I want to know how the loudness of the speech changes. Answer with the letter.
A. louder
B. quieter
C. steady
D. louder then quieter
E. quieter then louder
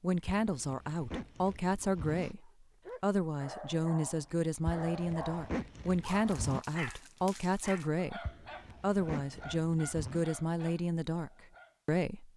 C.